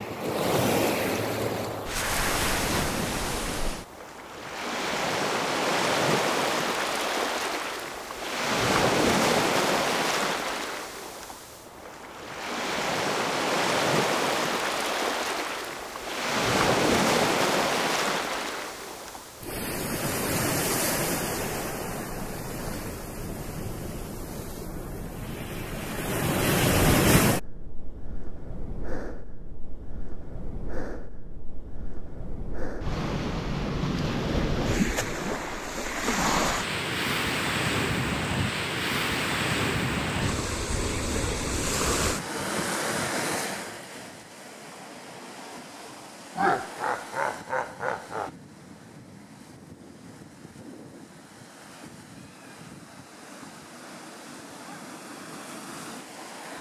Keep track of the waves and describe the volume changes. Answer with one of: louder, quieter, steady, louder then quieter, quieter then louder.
quieter.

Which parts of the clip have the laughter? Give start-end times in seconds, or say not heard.
46.4-48.3.